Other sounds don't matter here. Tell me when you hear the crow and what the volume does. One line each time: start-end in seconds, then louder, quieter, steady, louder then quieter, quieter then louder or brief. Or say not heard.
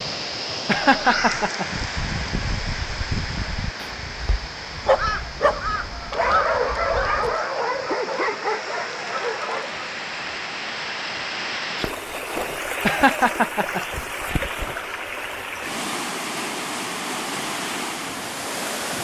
0.9-7.3 quieter then louder.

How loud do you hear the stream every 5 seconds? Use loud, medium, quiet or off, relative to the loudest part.
loud, medium, loud, loud.